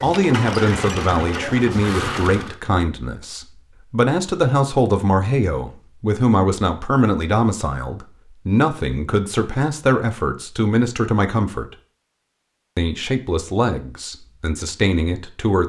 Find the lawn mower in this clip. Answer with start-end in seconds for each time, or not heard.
0.0-2.6.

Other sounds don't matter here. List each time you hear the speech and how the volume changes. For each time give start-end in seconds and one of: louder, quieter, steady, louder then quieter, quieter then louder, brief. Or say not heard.
0.0-11.8 steady
12.8-15.6 brief.